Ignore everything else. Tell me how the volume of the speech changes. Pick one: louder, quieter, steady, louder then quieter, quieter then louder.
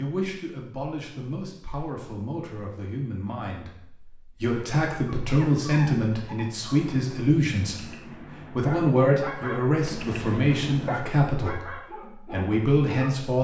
louder.